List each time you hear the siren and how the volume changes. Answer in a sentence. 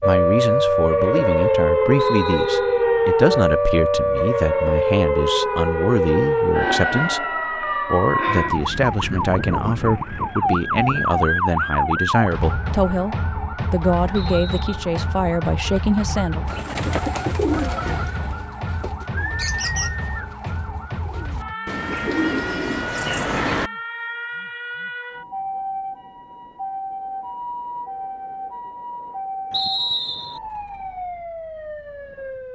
You can hear the siren from 0.0 to 32.5 s, getting quieter.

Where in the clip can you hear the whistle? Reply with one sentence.
The whistle can be heard from 1.9 to 2.9 s, from 14.2 to 14.8 s and from 29.5 to 30.4 s.